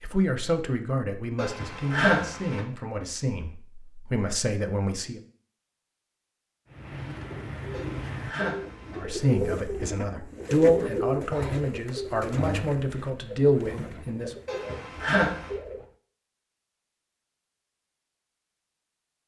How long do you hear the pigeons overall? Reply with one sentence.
The pigeons can be heard for 9 seconds in total.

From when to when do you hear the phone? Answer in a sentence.
The phone can be heard from 1.4 to 2.6 s, from 7.7 to 9.1 s and from 14.4 to 15.6 s.